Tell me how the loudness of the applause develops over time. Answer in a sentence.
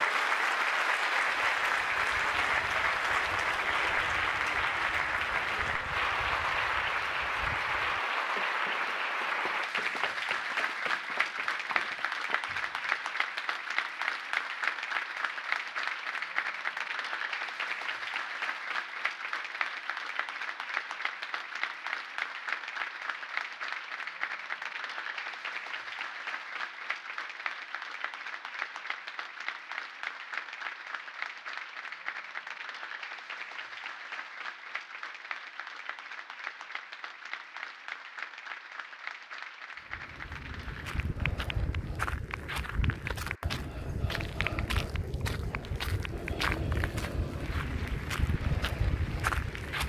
The loudness of the applause goes down.